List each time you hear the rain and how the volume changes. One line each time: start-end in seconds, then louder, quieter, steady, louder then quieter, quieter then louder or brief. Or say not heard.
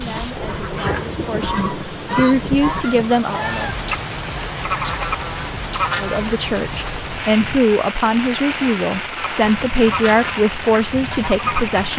0.0-11.9 steady.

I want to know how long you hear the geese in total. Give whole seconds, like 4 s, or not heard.
9 s.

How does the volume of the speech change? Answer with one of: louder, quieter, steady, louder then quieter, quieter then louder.
louder.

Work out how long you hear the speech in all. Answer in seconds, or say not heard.
9 s.